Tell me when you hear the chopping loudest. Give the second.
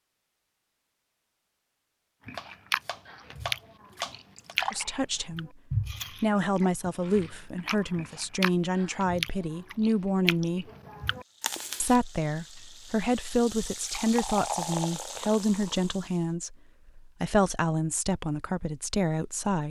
4 s.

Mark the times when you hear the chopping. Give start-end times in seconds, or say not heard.
2.4-4.5.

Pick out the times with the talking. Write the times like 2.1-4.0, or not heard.
4.7-5.5, 6.2-10.7, 11.8-19.6.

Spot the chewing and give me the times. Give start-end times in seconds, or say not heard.
2.2-11.9.